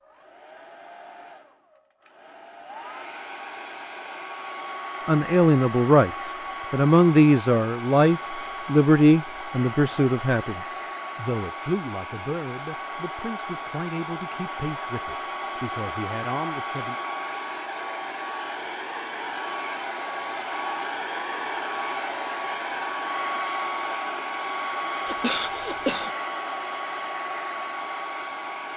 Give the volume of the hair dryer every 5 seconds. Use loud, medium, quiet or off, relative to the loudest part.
medium, medium, medium, loud, loud, loud.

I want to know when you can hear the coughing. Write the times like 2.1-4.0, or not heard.
25.1-26.1.